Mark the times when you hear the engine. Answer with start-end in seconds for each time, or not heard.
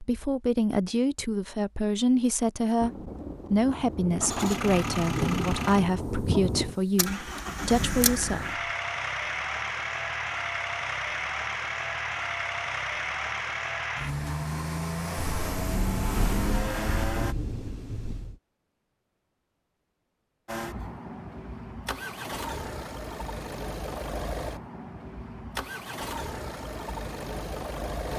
4.2-17.4, 20.4-28.1.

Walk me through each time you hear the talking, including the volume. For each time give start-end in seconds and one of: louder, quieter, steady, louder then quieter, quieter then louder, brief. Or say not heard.
0.0-2.9 brief
3.5-8.4 steady.